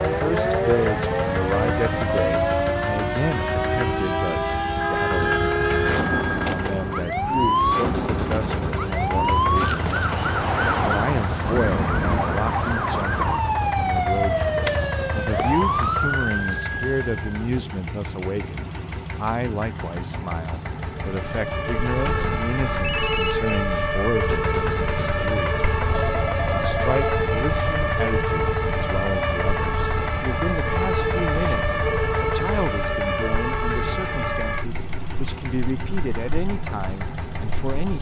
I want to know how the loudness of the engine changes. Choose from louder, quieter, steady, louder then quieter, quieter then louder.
steady.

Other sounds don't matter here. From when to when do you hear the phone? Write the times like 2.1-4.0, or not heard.
4.8-7.0, 22.8-23.4, 25.9-27.2.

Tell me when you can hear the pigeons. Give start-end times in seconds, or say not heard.
not heard.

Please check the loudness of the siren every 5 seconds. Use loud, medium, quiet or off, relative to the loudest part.
loud, loud, loud, loud, loud, loud, loud, off.